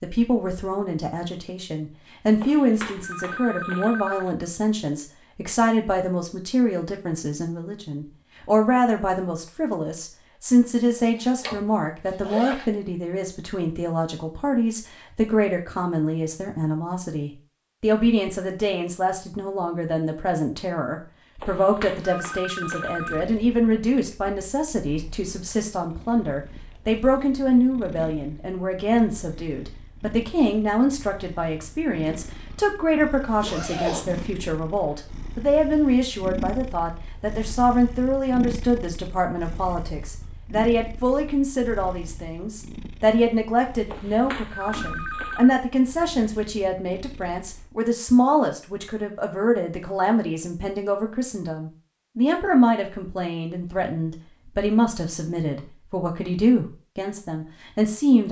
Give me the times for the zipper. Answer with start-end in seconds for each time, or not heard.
11.4-12.7, 33.4-34.3.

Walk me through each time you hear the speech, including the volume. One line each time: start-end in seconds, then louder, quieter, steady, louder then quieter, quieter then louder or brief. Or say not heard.
0.0-58.2 steady.